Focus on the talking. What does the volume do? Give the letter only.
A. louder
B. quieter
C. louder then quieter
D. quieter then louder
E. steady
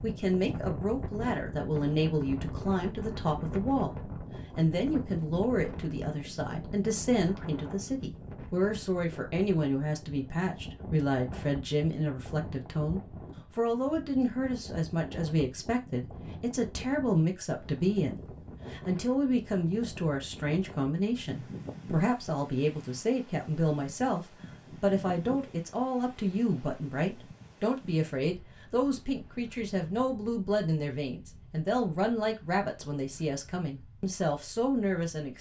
E.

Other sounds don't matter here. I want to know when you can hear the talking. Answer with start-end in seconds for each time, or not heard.
0.0-4.0, 4.5-35.3.